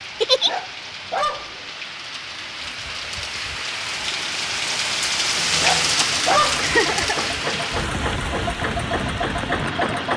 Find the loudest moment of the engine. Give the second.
10 s.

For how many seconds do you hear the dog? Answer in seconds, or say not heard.
2 s.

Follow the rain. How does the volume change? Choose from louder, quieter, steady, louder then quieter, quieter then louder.
louder then quieter.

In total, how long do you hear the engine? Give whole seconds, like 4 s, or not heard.
5 s.